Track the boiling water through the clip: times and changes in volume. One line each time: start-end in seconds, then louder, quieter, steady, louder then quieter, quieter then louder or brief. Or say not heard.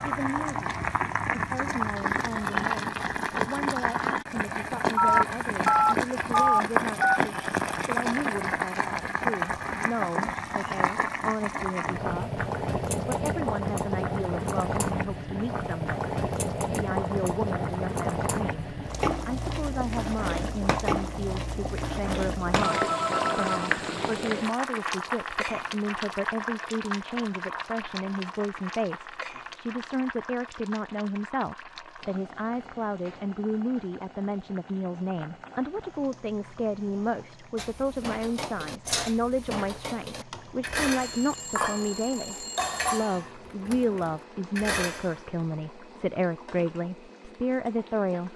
0.0-48.3 quieter.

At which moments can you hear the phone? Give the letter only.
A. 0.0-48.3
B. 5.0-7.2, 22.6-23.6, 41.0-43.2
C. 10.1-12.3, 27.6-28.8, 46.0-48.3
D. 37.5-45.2
B.